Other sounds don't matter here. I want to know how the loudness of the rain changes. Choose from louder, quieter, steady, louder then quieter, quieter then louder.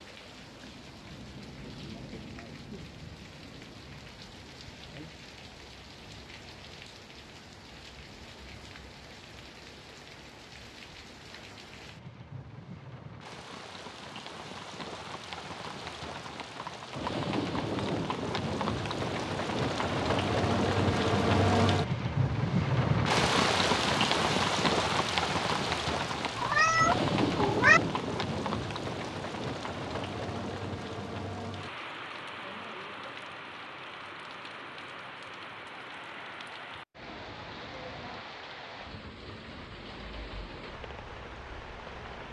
louder then quieter.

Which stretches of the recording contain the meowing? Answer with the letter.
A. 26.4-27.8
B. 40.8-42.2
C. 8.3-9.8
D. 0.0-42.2
A.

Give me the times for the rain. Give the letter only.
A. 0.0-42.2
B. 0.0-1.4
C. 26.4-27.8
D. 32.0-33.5
A.